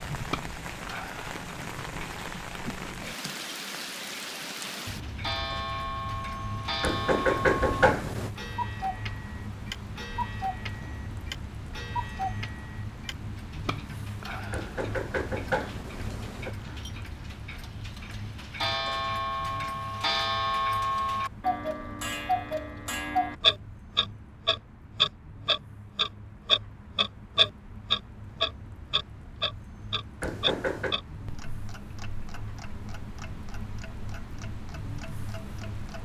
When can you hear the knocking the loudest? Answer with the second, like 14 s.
7 s.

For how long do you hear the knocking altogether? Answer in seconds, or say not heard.
4 s.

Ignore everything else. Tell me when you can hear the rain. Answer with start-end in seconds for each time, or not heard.
0.0-36.0.